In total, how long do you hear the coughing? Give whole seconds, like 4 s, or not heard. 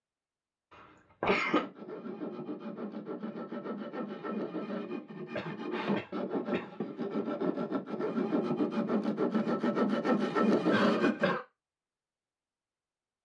3 s.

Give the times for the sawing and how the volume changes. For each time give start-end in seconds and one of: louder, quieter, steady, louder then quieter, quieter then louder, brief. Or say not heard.
1.2-11.4 louder.